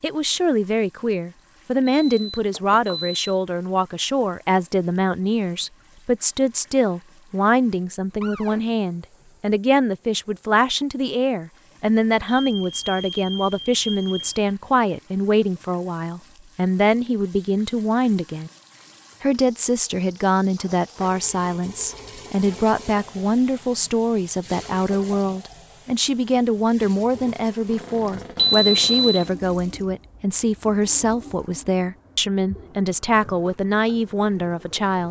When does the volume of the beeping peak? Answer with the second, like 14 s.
29 s.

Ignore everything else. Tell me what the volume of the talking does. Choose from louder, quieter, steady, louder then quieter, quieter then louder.
steady.